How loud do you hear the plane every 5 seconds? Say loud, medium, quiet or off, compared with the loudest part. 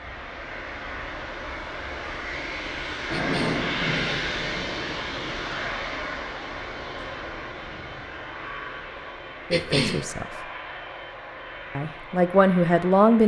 loud, loud, medium.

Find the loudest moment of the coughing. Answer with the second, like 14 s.
10 s.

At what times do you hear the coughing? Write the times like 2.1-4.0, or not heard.
3.1-3.6, 9.5-10.1.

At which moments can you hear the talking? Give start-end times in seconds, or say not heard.
9.5-10.3, 11.8-13.2.